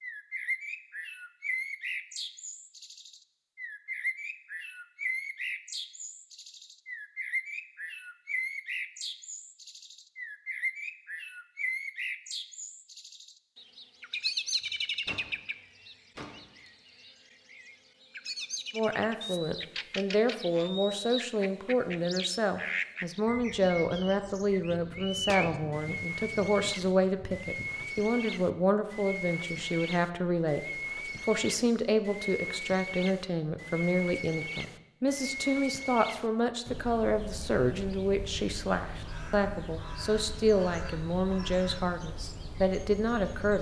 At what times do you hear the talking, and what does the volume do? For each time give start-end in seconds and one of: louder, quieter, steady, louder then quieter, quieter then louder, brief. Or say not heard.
18.8-30.6 steady
31.2-43.5 steady.